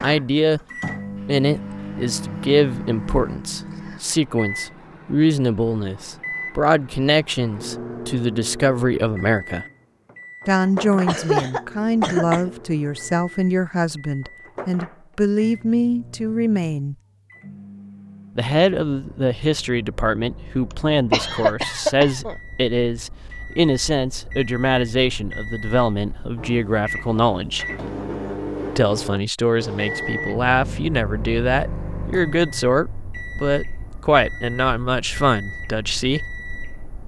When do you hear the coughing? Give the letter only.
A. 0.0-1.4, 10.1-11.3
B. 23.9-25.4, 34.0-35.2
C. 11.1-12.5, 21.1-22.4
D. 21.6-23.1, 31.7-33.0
C.